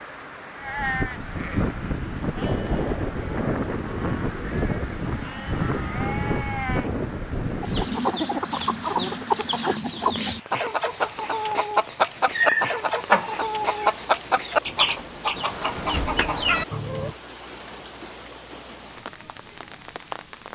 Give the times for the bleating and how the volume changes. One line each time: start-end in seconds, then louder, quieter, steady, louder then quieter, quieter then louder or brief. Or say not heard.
0.6-8.0 steady.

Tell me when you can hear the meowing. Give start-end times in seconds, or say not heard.
12.2-13.9.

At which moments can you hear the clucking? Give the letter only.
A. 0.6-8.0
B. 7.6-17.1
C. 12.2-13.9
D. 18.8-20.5
B.